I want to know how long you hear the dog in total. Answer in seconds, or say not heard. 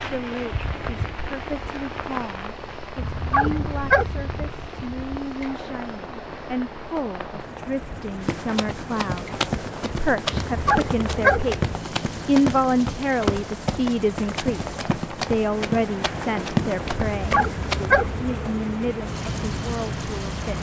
4 s.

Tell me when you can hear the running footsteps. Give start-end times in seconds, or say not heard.
8.2-17.9.